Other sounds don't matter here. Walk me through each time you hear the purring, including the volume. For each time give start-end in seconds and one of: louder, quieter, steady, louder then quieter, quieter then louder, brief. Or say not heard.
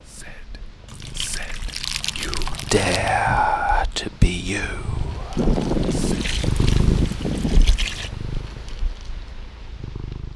0.0-10.3 louder then quieter.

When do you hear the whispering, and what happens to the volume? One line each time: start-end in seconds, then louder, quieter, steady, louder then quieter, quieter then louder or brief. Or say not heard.
0.1-6.1 louder then quieter.